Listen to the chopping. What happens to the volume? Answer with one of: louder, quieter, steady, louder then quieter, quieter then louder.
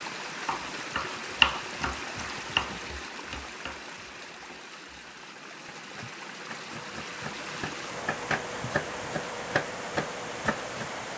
quieter then louder.